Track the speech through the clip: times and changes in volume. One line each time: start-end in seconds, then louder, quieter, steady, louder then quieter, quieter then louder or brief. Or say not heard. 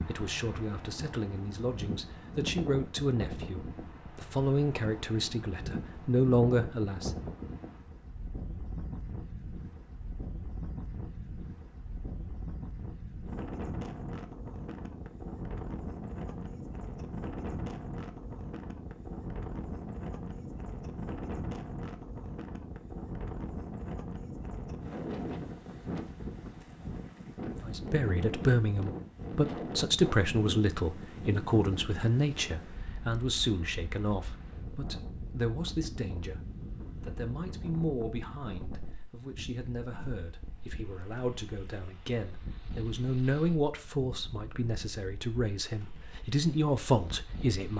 0.1-7.1 louder
27.6-47.7 quieter then louder.